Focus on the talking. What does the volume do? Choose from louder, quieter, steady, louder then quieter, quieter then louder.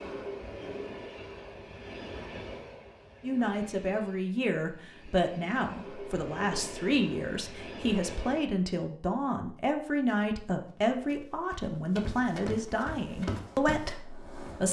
steady.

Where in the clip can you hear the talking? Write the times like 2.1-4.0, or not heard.
3.2-14.6.